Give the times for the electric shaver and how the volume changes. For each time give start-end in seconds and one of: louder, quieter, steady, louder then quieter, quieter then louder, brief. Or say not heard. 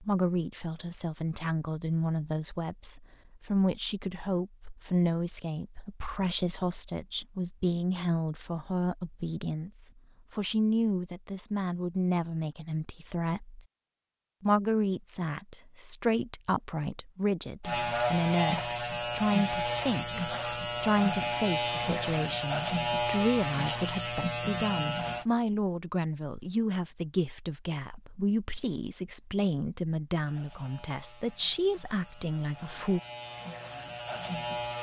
17.6-25.2 steady
30.2-34.7 louder.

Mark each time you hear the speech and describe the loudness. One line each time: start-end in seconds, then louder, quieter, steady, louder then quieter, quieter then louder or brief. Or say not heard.
0.0-13.6 steady
14.4-33.0 steady.